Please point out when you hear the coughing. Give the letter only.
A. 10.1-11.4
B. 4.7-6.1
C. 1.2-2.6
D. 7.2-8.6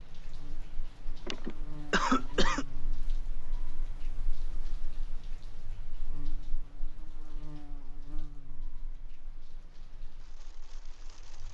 C.